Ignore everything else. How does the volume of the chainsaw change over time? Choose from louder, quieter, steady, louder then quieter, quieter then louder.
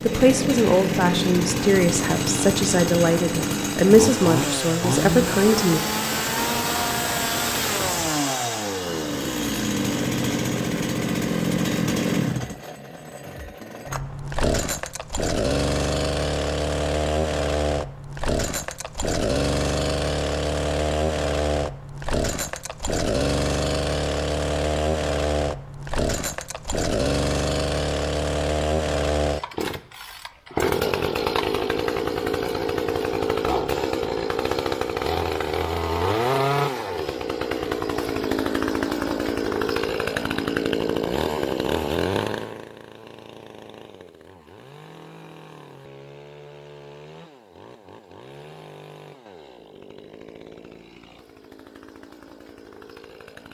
quieter.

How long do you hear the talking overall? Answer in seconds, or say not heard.
6 s.